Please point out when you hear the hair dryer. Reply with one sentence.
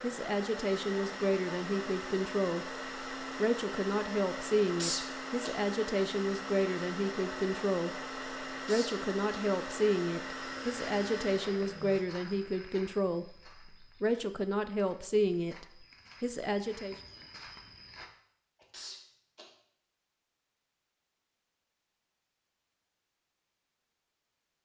The hair dryer can be heard from 0.0 to 12.1 s.